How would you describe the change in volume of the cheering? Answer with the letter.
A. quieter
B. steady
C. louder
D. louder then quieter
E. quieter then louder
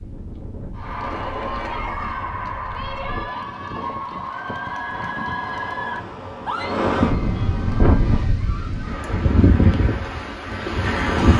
A.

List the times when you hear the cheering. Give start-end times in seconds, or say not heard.
0.8-9.0.